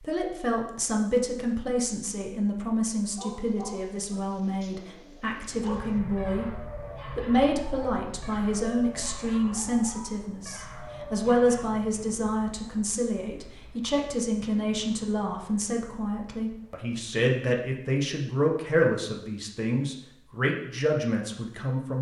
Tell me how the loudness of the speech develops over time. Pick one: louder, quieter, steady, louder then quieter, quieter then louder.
steady.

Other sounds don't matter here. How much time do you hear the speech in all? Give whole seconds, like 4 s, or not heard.
22 s.